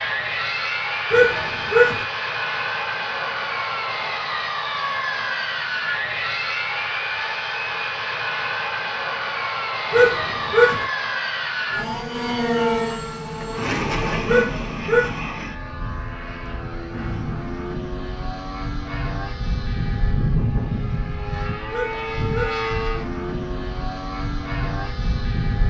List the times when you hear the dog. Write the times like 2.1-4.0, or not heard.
1.1-2.0, 9.9-10.8, 14.2-15.2, 21.7-22.6.